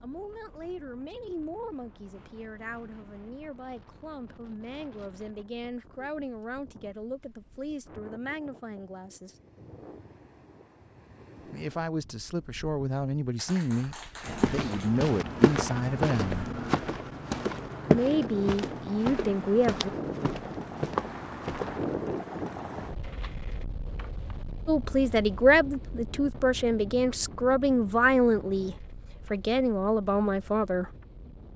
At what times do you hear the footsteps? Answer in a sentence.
You can hear the footsteps from 14.2 to 21.9 s.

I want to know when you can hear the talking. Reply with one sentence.
You can hear the talking from 0.0 to 9.3 s, from 11.5 to 16.4 s, from 17.9 to 19.9 s and from 24.6 to 30.9 s.